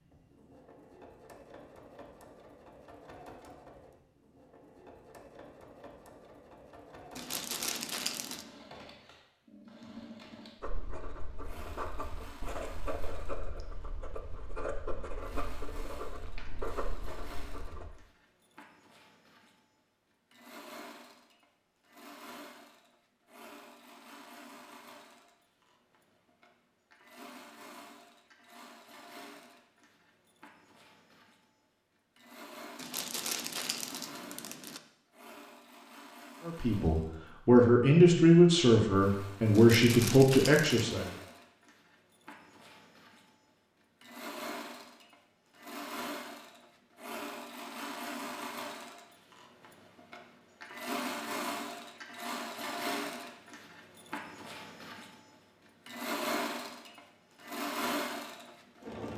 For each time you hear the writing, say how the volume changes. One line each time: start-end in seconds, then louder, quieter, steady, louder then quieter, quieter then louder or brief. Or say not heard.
10.6-17.9 steady.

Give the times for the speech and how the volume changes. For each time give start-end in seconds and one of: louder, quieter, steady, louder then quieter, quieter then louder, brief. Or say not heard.
36.5-41.1 steady.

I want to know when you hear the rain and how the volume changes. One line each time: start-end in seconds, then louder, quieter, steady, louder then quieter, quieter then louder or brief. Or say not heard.
not heard.